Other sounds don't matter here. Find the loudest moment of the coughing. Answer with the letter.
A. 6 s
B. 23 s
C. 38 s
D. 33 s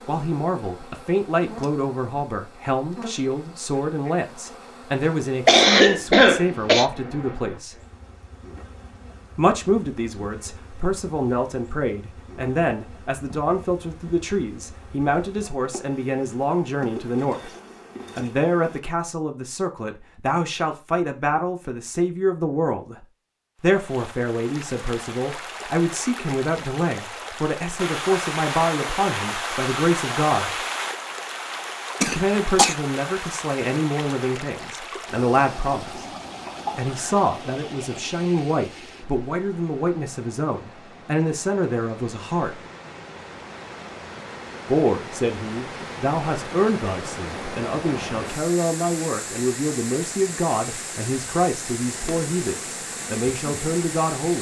A.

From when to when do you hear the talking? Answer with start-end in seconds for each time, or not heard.
0.0-7.8, 9.3-17.5, 18.1-30.6, 32.0-36.0, 36.8-42.6, 44.6-54.3.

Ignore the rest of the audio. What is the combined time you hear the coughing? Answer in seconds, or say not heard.
3 s.